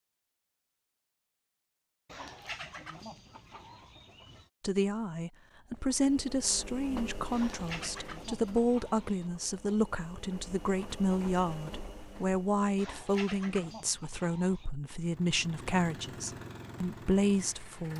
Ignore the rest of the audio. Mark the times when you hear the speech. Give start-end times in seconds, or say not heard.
4.6-17.9.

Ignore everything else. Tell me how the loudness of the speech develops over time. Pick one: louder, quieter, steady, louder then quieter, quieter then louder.
steady.